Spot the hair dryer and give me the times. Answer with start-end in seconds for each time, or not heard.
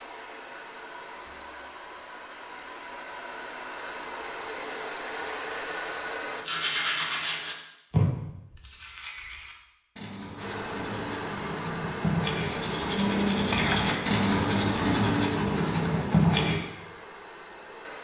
0.0-6.5, 10.3-18.0.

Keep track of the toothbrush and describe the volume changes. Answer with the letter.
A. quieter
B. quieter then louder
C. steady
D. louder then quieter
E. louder
B.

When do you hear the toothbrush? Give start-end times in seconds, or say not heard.
6.4-16.6.